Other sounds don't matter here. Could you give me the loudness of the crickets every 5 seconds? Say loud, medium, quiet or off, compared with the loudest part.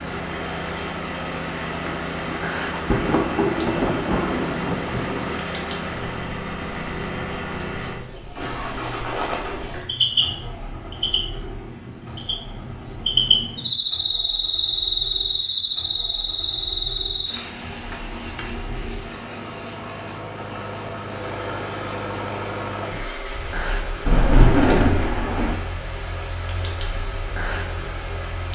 medium, medium, loud, loud, medium, medium.